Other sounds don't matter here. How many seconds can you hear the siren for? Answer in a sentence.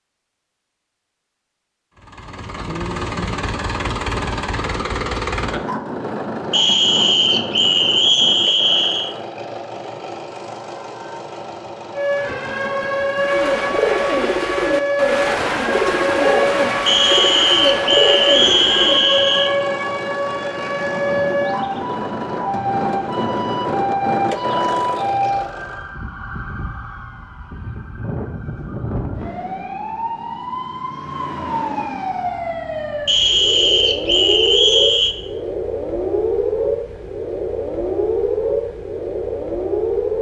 You can hear the siren for 28 seconds altogether.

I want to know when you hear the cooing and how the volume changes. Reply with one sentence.
The cooing can be heard from 13.2 to 19.1 s, at a steady volume.